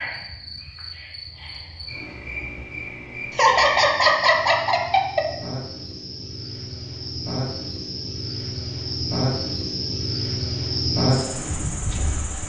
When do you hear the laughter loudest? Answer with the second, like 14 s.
4 s.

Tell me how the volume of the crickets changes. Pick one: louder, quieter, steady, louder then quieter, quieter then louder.
louder.